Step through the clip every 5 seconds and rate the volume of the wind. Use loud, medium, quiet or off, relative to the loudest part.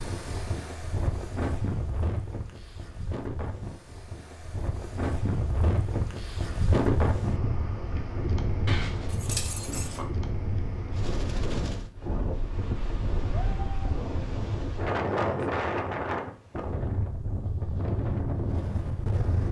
medium, loud, loud, loud.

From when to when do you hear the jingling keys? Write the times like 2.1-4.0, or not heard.
8.7-10.1.